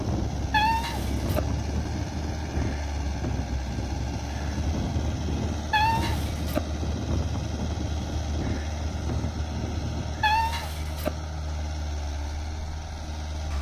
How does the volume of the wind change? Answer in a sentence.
The loudness of the wind stays about the same.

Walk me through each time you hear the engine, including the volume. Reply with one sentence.
You can hear the engine from 0.0 to 13.5 s, at a steady volume.